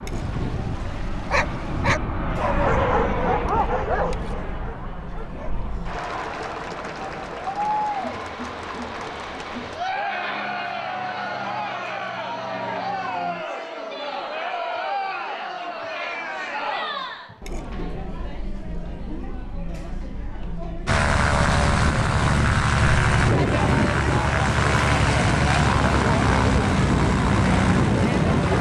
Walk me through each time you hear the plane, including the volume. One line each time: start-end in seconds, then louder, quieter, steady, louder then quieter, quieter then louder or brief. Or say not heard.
0.0-13.4 quieter
20.9-28.5 steady.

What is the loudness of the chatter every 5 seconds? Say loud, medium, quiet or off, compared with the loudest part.
medium, loud, loud, loud, loud, loud.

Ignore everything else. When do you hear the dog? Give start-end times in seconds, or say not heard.
0.1-5.6.